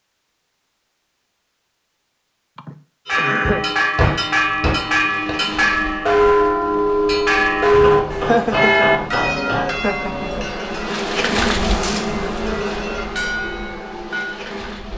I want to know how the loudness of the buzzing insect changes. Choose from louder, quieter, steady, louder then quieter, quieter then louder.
louder then quieter.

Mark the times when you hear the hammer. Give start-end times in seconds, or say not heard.
3.4-5.1, 7.7-9.7.